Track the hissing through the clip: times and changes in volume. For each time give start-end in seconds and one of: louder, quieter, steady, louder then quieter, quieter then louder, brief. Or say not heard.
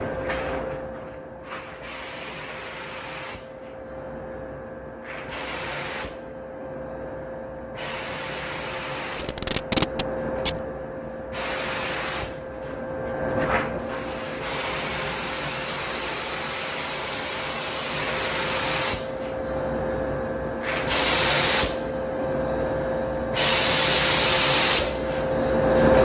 0.0-25.9 louder.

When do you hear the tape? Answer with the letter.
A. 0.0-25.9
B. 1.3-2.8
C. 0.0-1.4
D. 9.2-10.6
D.